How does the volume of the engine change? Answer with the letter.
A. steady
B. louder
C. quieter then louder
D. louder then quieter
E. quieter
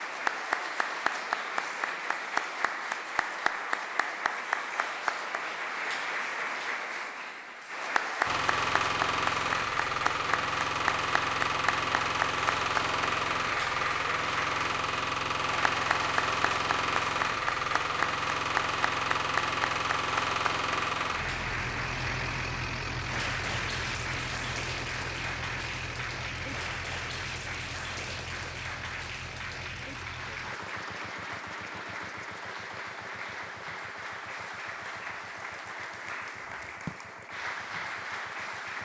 E.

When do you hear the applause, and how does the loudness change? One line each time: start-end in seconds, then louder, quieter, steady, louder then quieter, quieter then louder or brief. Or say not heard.
0.0-38.7 quieter.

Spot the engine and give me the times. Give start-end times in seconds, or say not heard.
8.2-38.7.